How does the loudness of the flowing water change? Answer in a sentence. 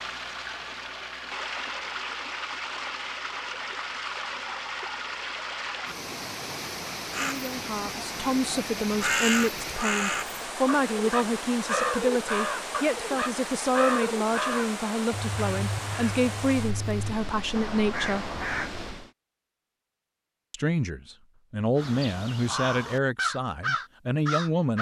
The volume of the flowing water stays about the same.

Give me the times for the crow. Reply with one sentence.
You can hear the crow from 7.1 to 18.7 s and from 21.8 to 24.7 s.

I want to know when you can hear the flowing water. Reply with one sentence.
You can hear the flowing water from 0.0 to 19.1 s.